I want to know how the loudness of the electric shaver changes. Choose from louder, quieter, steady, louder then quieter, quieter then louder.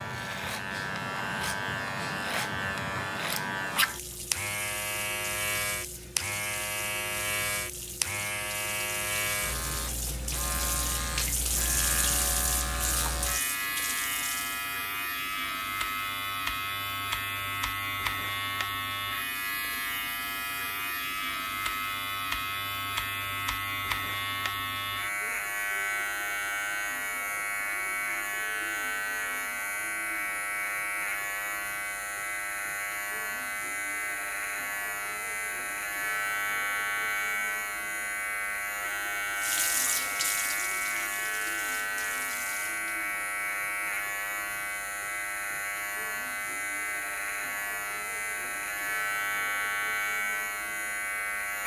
steady.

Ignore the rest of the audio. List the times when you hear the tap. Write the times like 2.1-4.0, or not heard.
3.8-14.7, 39.4-43.0.